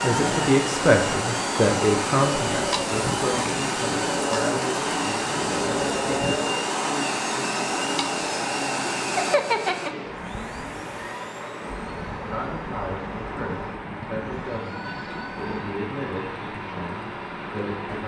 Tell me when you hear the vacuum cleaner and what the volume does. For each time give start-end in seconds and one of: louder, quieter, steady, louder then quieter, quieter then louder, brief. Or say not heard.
0.0-18.0 quieter.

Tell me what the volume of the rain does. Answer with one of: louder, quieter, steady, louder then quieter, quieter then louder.
steady.